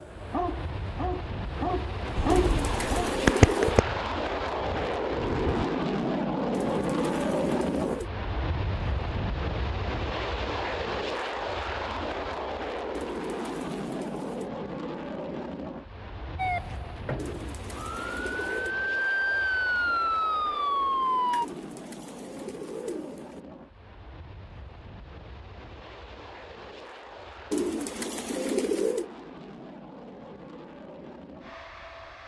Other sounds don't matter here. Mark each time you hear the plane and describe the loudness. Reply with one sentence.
The plane can be heard from 0.0 to 32.2 s, getting quieter.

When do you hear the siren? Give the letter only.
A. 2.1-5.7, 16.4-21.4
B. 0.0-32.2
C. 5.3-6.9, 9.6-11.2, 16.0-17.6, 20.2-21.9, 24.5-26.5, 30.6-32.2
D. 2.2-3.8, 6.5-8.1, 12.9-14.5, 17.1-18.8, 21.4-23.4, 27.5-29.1
A.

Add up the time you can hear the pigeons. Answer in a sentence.
You can hear the pigeons for 10 seconds altogether.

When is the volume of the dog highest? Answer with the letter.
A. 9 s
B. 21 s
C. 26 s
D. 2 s
D.